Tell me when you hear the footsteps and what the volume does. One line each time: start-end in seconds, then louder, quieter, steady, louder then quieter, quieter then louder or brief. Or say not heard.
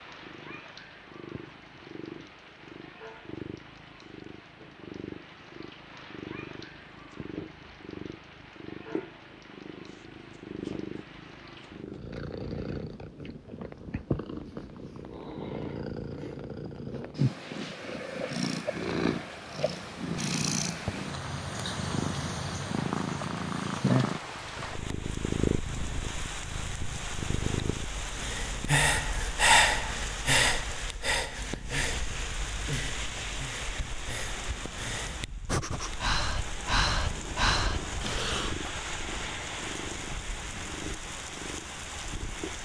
not heard.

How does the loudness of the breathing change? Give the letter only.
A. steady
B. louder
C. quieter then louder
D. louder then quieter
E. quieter
C.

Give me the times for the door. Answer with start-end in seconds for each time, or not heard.
not heard.